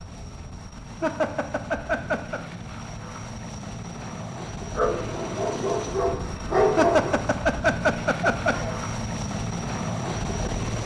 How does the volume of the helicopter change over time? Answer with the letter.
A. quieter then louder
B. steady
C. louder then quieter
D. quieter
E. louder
E.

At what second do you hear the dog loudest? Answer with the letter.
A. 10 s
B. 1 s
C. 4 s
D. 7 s
D.